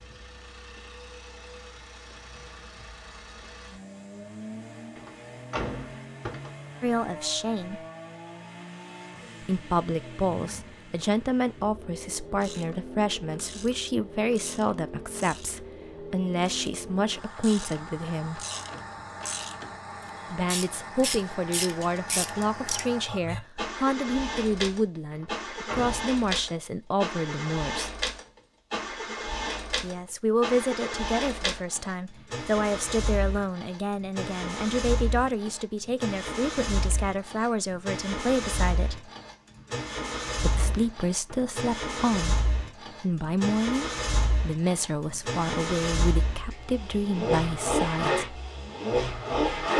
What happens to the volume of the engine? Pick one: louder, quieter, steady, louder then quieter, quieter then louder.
louder.